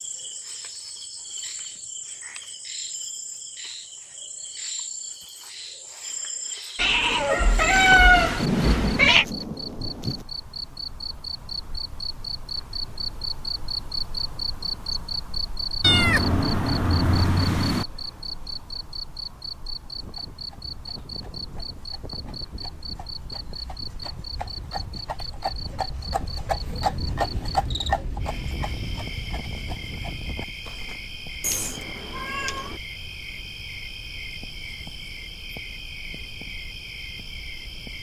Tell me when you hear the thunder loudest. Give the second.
9 s.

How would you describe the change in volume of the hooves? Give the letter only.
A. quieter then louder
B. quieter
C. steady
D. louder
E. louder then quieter
E.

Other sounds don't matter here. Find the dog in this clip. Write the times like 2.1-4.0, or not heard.
not heard.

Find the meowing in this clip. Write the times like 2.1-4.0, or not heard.
6.8-9.2, 15.8-17.9, 31.4-32.8.